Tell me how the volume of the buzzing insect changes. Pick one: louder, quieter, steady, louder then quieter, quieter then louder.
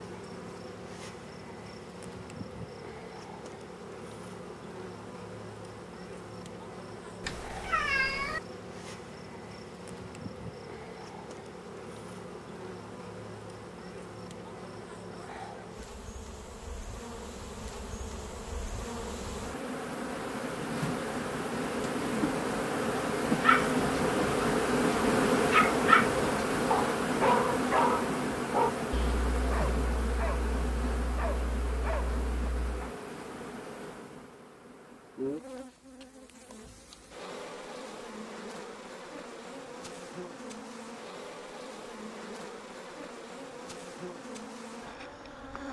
louder then quieter.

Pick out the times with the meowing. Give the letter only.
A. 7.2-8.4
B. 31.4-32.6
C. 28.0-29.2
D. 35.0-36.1
A.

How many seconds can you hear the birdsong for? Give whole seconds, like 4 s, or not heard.
not heard.